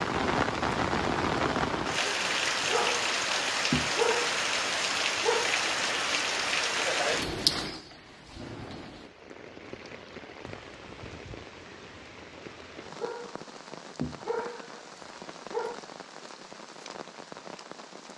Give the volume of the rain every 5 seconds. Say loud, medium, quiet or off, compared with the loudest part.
loud, loud, quiet, quiet.